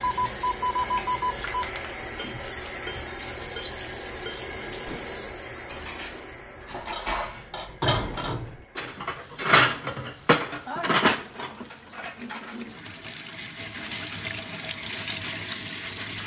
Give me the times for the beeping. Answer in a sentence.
You can hear the beeping from 0.0 to 1.7 s.